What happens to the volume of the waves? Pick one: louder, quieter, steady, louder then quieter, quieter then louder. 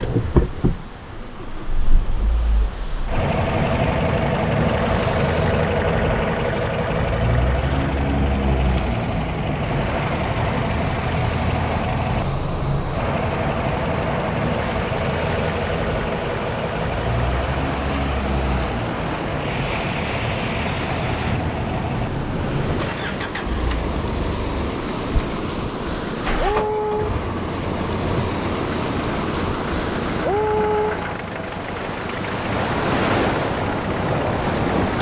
louder.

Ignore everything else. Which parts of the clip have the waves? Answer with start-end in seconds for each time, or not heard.
0.0-34.9.